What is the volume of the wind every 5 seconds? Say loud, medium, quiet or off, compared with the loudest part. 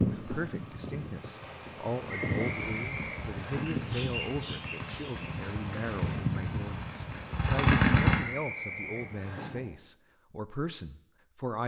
loud, loud, off.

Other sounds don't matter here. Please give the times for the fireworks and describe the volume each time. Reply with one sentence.
You can hear the fireworks from 2.5 to 8.2 s, getting louder.